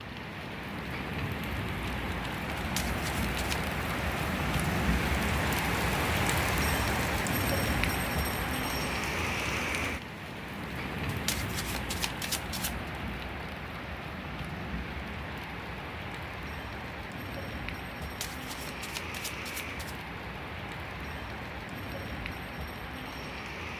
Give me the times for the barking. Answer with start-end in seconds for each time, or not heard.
not heard.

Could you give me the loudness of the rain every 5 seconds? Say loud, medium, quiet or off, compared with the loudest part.
loud, loud, medium, medium, medium.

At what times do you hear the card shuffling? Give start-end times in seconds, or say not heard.
2.5-3.6, 11.1-12.9, 18.0-20.1.